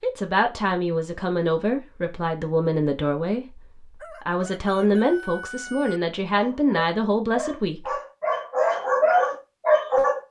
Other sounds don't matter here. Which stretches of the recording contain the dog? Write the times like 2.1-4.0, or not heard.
6.3-10.2.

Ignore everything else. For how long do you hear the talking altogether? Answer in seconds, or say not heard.
8 s.